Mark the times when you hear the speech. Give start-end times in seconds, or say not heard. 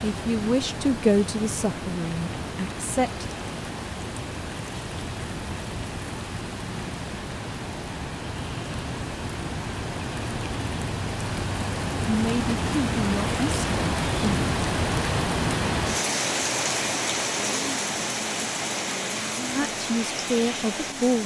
0.0-3.2, 12.1-14.4, 19.6-21.2.